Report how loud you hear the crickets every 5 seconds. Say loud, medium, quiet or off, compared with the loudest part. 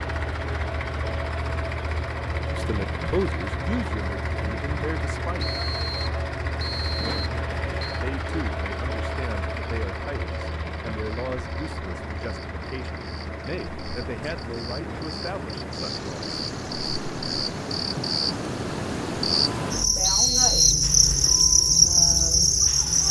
quiet, quiet, quiet, medium, loud.